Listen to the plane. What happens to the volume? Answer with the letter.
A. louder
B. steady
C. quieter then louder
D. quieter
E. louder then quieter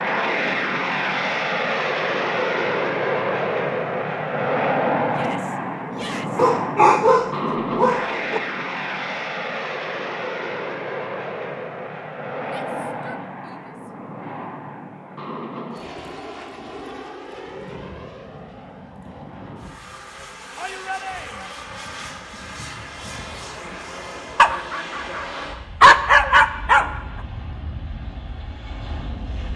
D.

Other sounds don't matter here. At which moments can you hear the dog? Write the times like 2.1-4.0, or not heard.
6.3-8.4, 24.4-27.0.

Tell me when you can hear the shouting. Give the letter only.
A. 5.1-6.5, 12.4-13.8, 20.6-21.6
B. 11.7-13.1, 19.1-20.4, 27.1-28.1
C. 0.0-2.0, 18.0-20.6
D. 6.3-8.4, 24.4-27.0
A.